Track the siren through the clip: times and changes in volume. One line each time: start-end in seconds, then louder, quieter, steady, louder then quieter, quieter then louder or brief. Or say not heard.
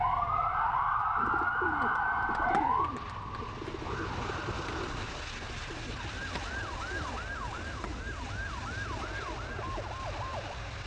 0.0-10.6 quieter.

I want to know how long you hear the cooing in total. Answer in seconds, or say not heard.
9 s.